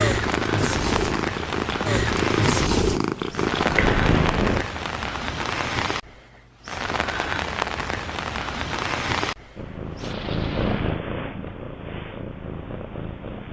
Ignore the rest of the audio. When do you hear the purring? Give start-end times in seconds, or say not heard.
0.0-4.7, 9.6-13.4.